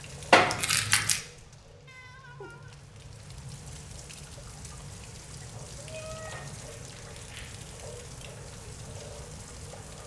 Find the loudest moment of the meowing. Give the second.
6 s.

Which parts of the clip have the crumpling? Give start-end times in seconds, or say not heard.
0.3-1.2, 6.3-7.5.